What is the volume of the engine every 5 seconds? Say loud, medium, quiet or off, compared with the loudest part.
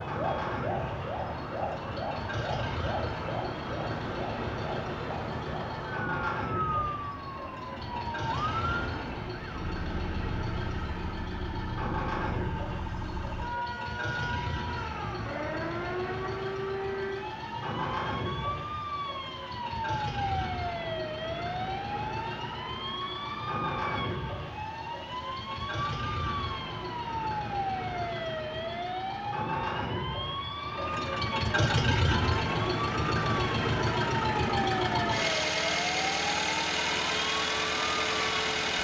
medium, medium, medium, medium, medium, medium, loud, loud.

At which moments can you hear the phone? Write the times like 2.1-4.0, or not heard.
not heard.